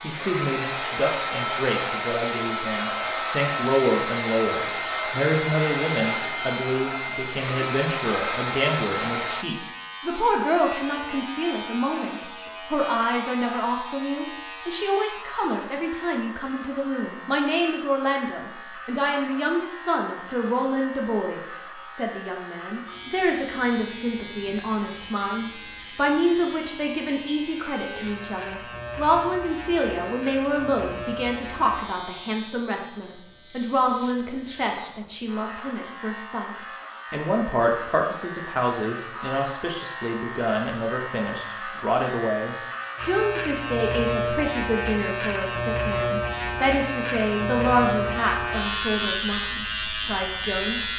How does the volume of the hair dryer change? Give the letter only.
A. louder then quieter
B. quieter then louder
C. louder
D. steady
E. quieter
D.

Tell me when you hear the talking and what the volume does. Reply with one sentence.
The talking can be heard from 0.0 to 50.8 s, at a steady volume.